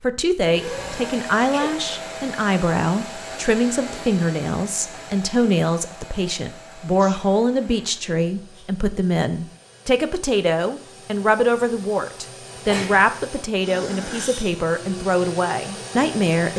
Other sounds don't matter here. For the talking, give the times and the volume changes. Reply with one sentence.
The talking can be heard from 0.0 to 16.5 s, at a steady volume.